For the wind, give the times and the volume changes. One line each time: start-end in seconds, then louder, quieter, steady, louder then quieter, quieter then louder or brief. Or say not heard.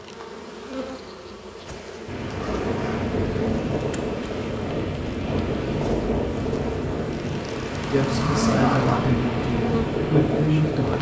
2.0-10.9 steady.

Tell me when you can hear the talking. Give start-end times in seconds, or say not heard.
7.9-10.9.